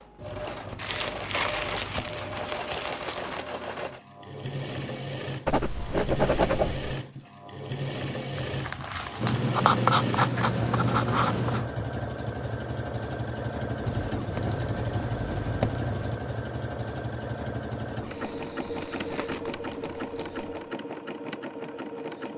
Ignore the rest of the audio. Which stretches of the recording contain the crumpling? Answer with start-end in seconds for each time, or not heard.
0.8-3.5, 8.3-9.4, 18.0-20.4.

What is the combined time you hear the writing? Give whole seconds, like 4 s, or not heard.
10 s.